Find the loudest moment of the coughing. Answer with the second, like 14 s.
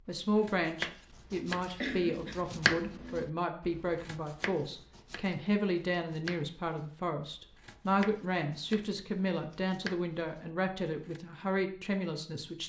2 s.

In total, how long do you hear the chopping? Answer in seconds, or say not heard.
11 s.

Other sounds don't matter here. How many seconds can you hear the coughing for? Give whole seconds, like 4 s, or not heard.
2 s.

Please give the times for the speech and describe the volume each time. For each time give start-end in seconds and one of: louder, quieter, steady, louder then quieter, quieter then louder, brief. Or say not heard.
0.1-12.6 steady.